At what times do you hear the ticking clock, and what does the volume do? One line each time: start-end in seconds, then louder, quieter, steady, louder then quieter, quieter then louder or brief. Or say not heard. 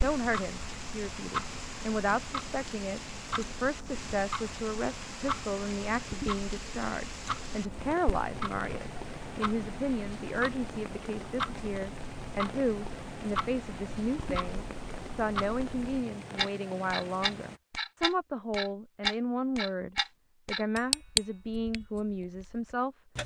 0.0-23.2 louder.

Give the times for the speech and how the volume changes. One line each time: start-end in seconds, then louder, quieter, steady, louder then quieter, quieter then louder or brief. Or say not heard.
0.0-22.9 steady.